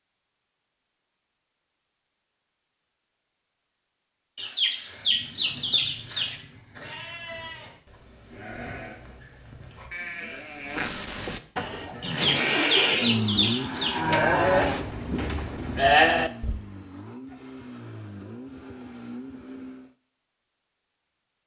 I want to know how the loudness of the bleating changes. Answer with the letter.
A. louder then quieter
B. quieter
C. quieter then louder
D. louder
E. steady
D.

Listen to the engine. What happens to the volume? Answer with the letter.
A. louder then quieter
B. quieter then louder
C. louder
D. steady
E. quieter
E.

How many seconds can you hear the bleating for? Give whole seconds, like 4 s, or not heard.
12 s.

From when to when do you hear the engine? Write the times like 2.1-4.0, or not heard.
11.7-19.9.